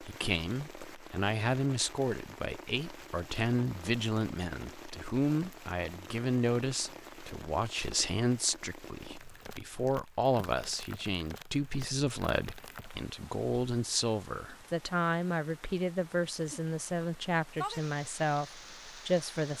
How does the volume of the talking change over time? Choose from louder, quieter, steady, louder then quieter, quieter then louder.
steady.